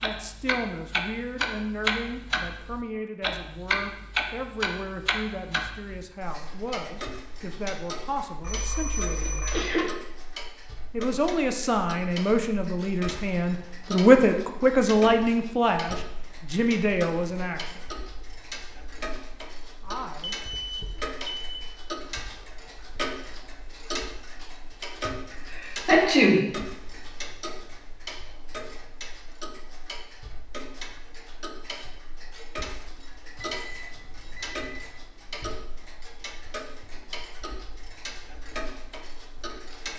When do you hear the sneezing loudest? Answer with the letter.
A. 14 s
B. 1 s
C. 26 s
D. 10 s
C.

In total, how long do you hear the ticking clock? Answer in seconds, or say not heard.
40 s.